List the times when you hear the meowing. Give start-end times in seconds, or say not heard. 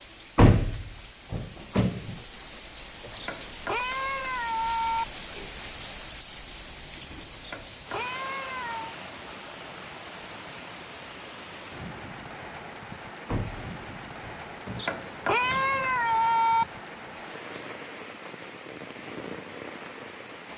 3.1-5.0, 7.4-8.9, 14.8-16.6.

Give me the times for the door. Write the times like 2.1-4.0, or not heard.
0.3-2.1, 13.2-15.0.